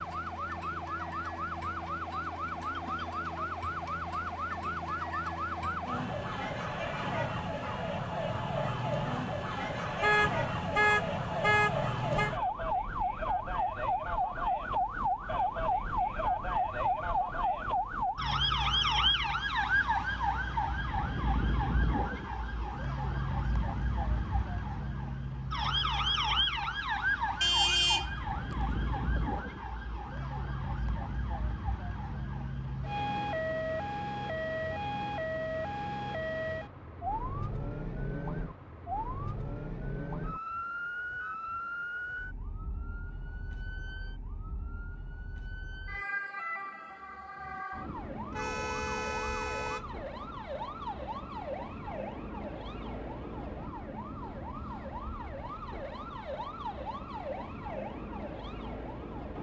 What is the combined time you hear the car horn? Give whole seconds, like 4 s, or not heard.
5 s.